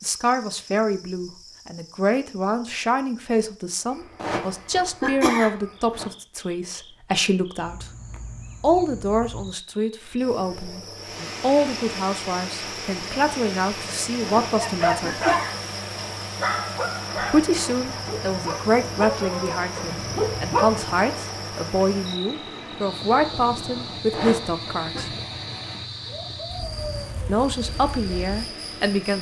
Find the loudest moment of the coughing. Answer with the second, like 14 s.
5 s.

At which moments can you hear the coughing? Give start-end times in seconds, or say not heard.
4.2-6.0, 14.2-16.1, 24.1-25.1.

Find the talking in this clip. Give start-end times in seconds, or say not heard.
0.0-7.8, 8.6-15.2, 17.3-25.1, 27.2-29.1.